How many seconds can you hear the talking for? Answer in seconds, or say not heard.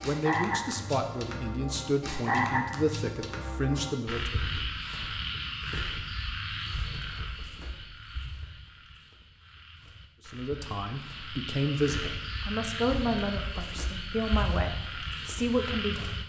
10 s.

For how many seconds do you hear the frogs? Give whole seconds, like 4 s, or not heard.
16 s.